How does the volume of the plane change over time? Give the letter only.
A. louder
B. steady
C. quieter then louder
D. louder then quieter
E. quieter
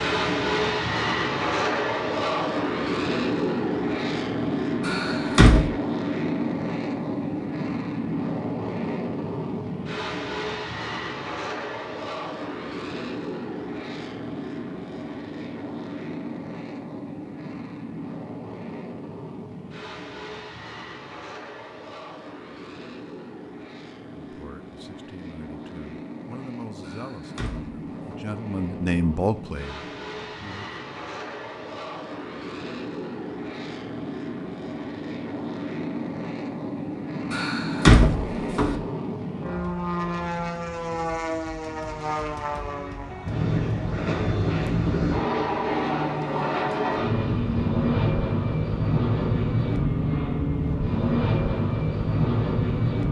C.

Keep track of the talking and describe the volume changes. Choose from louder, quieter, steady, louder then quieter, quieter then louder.
louder.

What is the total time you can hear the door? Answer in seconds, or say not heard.
4 s.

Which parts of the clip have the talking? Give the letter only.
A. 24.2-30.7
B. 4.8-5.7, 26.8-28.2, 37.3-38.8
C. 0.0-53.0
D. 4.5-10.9
A.